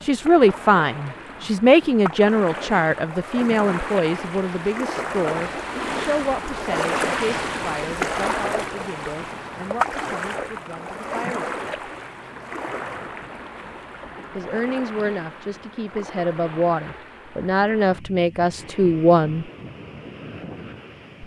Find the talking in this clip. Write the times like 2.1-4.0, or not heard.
0.0-11.9, 14.3-19.4.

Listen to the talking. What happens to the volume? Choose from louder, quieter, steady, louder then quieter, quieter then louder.
quieter then louder.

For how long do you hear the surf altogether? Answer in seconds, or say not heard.
21 s.